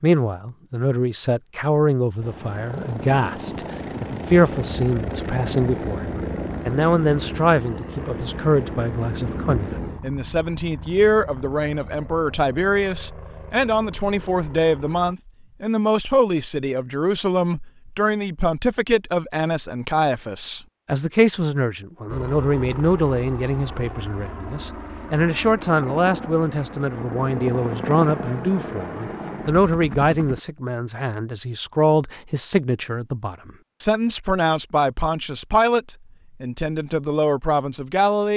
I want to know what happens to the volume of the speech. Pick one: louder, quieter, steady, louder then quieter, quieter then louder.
steady.